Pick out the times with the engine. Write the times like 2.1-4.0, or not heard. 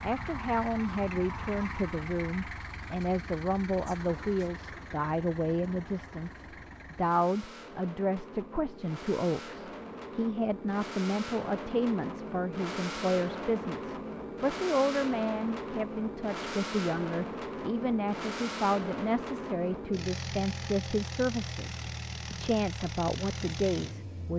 0.0-24.3.